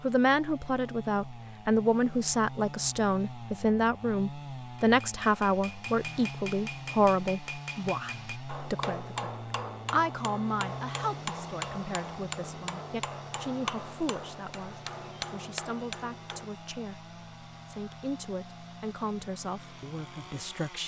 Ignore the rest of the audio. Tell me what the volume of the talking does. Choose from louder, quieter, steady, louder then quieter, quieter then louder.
quieter.